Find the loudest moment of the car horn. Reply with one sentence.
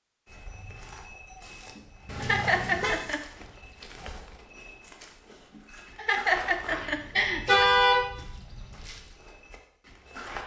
The loudest moment of the car horn is at 8 seconds.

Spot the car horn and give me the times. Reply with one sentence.
The car horn can be heard from 2.0 to 3.0 s and from 7.5 to 8.0 s.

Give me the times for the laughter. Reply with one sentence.
The laughter can be heard from 1.8 to 3.2 s and from 5.5 to 7.7 s.